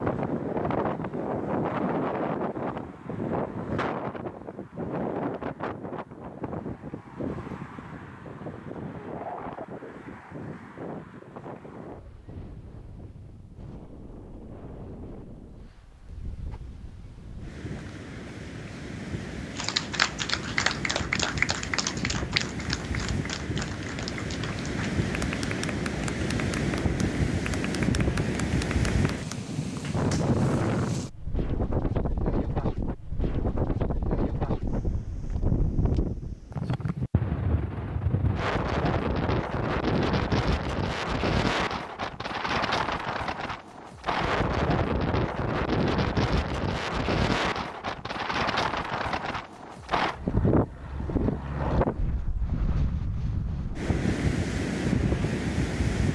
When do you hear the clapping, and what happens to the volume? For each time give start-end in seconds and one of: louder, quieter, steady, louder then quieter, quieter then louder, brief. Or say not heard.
19.6-30.4 quieter.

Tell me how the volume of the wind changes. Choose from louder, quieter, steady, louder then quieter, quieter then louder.
quieter then louder.